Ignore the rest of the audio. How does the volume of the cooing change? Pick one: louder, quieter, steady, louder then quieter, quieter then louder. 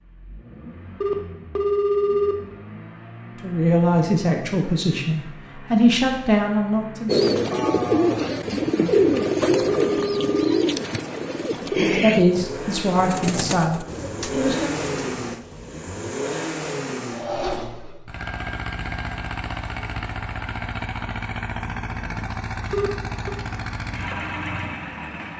quieter.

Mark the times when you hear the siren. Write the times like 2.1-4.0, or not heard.
not heard.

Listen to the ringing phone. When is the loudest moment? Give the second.
2 s.